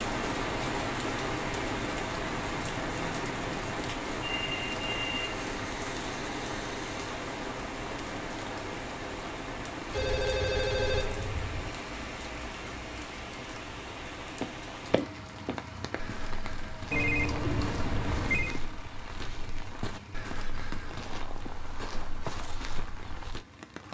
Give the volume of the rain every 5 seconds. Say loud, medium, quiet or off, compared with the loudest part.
loud, loud, medium, medium, quiet.